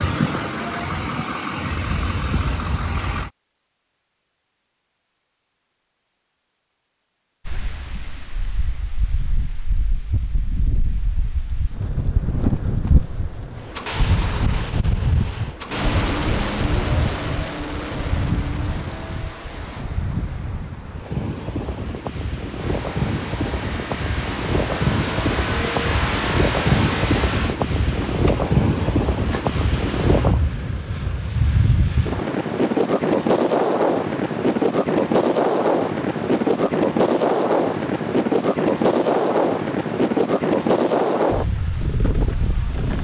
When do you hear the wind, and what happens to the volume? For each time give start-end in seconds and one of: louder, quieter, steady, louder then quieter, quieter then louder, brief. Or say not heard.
7.5-42.9 louder.